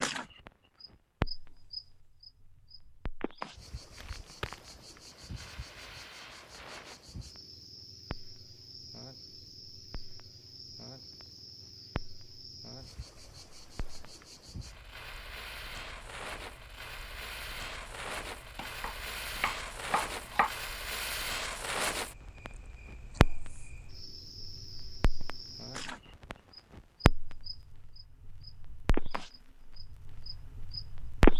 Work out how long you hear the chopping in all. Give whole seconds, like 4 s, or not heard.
2 s.